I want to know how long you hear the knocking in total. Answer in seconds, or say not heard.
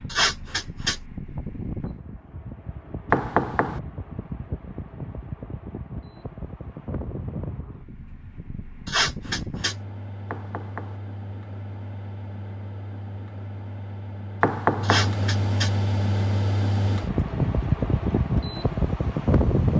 2 s.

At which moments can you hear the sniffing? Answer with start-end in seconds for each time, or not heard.
0.1-0.9, 8.8-9.8, 14.8-15.7.